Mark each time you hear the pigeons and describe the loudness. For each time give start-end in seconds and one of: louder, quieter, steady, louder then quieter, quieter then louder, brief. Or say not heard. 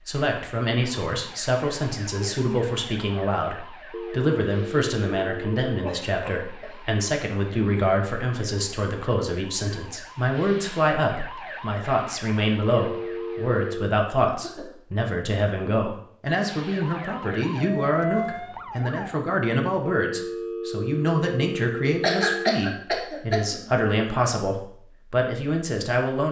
not heard.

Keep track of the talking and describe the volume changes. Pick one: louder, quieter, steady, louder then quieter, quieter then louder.
steady.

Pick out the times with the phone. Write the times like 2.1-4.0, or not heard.
3.9-5.8, 12.7-13.9, 20.0-22.6.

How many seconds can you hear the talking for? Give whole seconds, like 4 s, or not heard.
26 s.